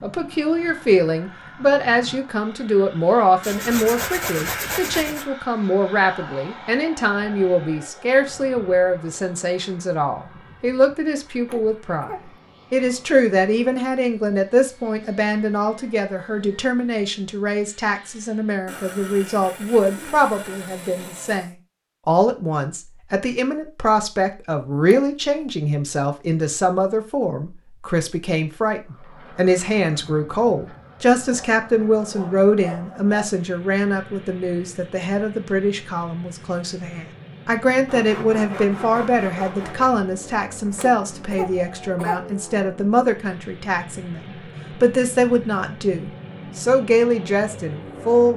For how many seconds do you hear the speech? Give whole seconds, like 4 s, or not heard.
48 s.